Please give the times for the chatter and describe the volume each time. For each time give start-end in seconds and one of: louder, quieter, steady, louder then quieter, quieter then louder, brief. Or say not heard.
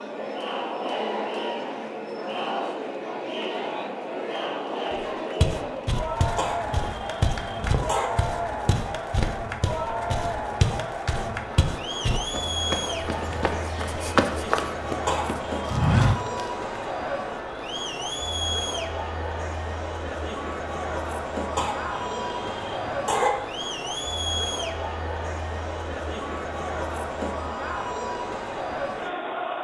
0.0-29.5 steady.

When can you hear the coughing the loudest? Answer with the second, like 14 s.
23 s.